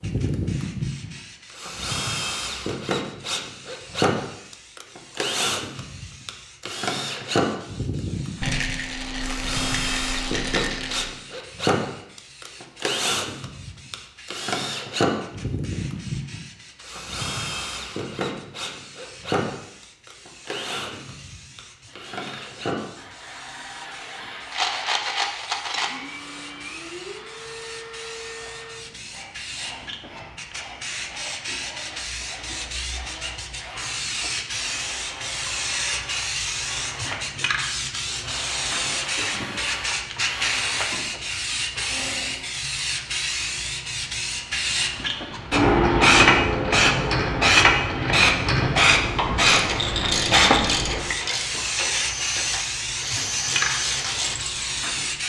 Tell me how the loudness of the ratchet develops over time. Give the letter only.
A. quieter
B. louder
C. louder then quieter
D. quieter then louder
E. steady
A.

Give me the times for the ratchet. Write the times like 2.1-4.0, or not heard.
45.8-54.4.